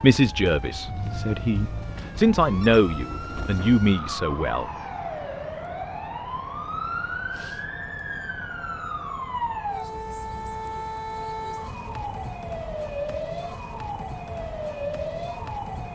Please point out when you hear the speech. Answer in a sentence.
You can hear the speech from 0.0 to 4.7 s.